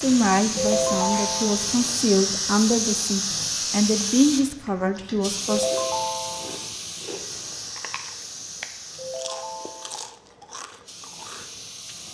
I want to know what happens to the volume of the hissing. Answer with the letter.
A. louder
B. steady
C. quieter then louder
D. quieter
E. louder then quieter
D.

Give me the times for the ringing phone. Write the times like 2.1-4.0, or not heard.
0.6-1.7, 5.5-6.6, 8.9-10.1.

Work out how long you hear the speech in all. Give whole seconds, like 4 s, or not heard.
6 s.